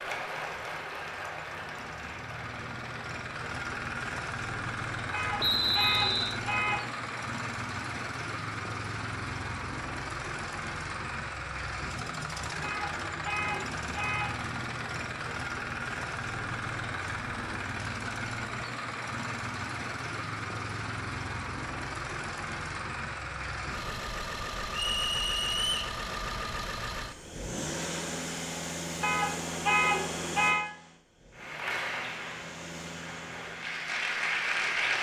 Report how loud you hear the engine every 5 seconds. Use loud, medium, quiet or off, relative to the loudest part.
loud, loud, loud, loud, loud, loud, medium.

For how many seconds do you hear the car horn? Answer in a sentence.
The car horn can be heard for 5 seconds in total.